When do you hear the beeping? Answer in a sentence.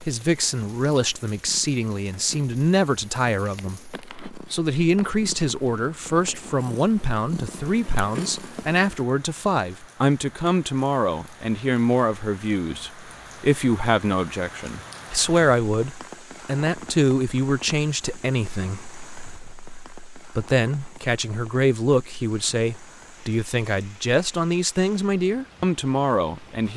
The beeping can't be heard in this clip.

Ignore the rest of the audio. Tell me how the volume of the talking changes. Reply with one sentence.
The loudness of the talking stays about the same.